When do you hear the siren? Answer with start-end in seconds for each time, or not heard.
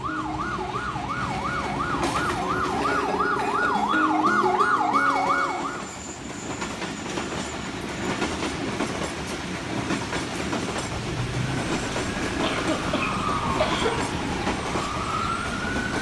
0.0-5.8, 10.8-15.9.